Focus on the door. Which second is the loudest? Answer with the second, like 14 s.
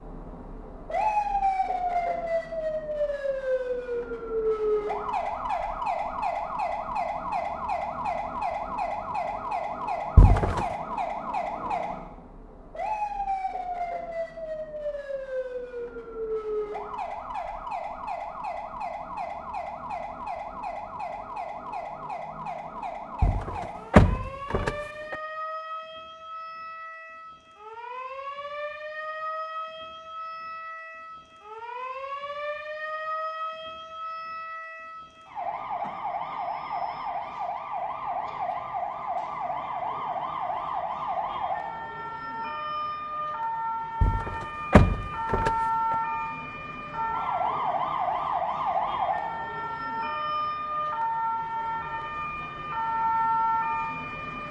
24 s.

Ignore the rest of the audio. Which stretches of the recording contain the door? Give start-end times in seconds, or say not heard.
10.2-10.7, 23.2-25.1, 44.0-46.0.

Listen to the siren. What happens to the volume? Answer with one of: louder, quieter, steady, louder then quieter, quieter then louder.
quieter then louder.